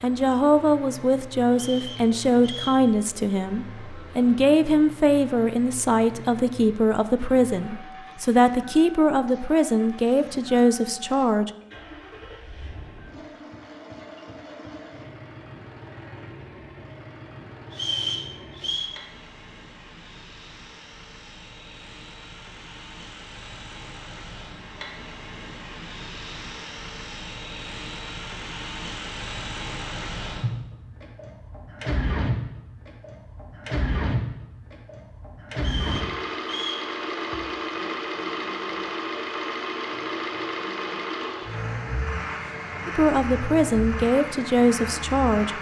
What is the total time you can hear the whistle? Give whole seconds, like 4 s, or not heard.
4 s.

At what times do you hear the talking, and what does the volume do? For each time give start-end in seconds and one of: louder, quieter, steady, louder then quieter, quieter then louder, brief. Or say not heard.
0.0-11.5 steady
42.9-45.5 brief.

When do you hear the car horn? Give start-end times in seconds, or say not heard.
not heard.